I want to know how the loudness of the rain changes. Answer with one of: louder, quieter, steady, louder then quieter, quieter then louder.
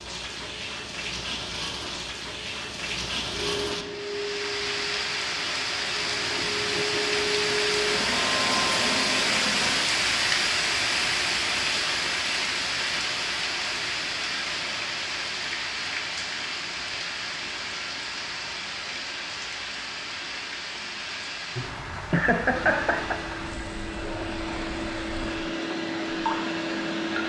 louder then quieter.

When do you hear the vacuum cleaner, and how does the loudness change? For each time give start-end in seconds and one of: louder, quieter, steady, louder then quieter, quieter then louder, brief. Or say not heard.
3.3-9.8 quieter then louder
22.4-27.2 louder.